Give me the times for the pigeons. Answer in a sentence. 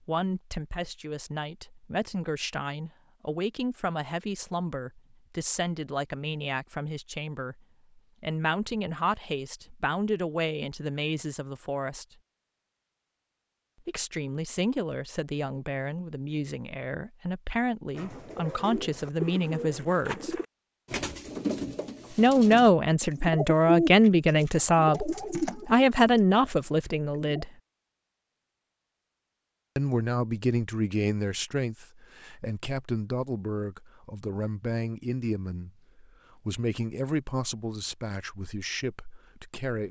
The pigeons can be heard from 17.9 to 27.4 s.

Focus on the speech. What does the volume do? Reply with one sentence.
The volume of the speech goes up, then down.